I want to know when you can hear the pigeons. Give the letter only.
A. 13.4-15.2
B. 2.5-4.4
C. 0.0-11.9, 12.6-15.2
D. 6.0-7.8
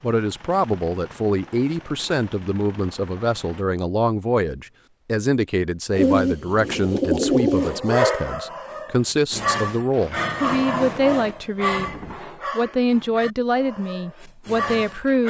D.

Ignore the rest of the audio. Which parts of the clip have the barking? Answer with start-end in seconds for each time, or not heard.
7.5-15.2.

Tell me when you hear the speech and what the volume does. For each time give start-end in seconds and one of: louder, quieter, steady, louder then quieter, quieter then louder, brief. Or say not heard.
0.0-11.9 steady
12.6-15.2 brief.